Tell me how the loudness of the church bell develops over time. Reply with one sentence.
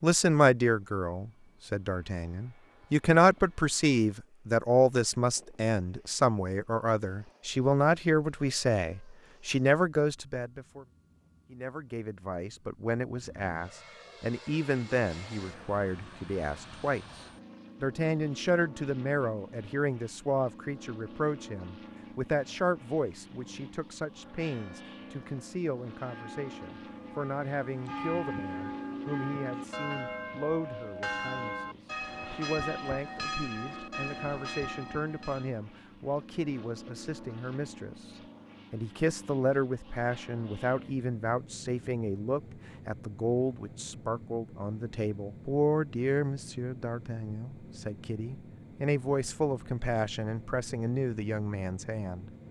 The volume of the church bell goes up.